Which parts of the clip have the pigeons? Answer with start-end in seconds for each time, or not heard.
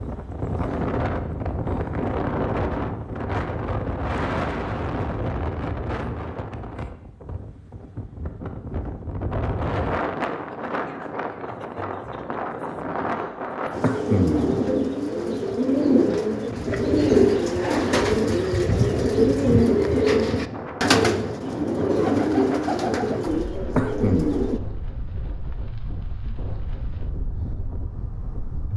13.7-24.6.